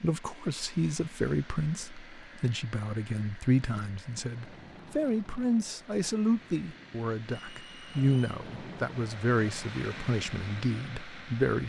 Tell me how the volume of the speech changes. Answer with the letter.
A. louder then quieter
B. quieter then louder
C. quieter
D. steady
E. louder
D.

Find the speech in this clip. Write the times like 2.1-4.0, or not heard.
0.0-11.6.